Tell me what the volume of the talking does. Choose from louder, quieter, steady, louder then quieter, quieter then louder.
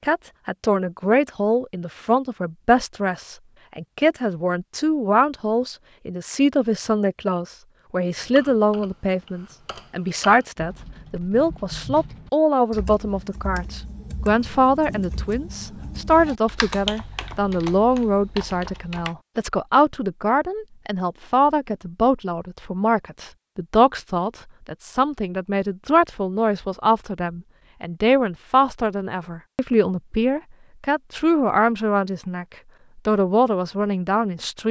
steady.